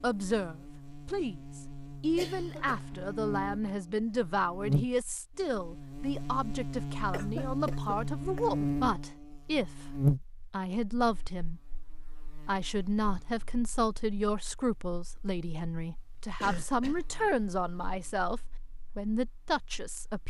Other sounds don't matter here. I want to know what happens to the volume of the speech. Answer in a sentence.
The volume of the speech stays about the same.